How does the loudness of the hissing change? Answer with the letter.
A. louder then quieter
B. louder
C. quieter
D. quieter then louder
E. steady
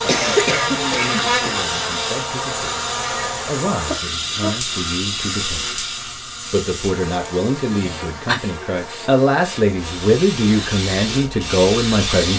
D.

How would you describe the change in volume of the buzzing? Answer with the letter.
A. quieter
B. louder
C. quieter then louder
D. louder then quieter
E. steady
A.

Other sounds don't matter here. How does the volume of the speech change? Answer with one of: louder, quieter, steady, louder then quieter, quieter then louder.
louder.